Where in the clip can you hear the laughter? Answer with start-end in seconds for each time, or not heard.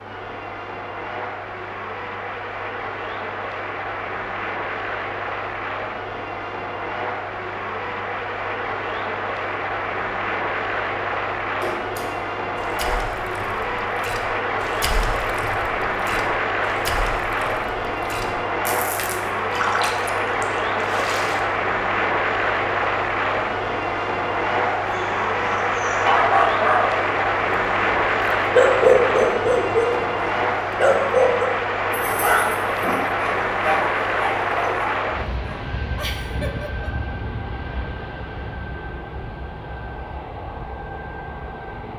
36.0-36.9.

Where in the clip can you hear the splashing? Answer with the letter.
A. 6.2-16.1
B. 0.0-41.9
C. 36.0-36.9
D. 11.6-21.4
D.